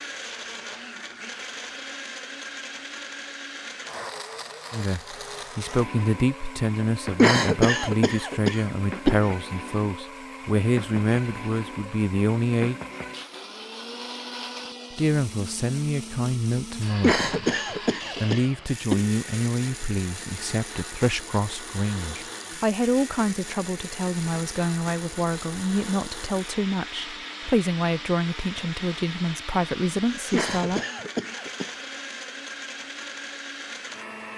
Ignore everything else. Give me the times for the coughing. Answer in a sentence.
You can hear the coughing from 7.2 to 9.2 s, from 17.0 to 19.1 s and from 30.3 to 31.8 s.